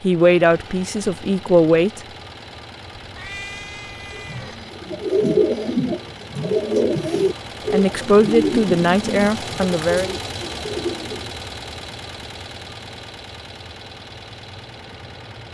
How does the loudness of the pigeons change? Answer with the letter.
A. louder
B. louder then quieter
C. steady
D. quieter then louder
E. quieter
E.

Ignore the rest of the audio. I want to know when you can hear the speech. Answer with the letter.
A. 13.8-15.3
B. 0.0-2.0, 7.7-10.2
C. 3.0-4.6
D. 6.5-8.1
B.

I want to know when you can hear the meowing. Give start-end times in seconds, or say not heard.
3.0-4.6.